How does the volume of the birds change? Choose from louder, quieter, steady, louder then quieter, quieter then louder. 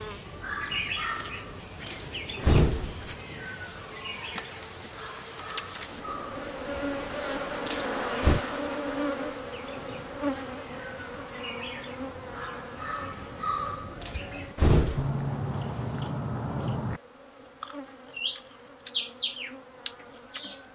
quieter then louder.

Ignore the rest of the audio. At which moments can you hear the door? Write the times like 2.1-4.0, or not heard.
1.9-3.0, 7.7-8.4, 14.0-15.2.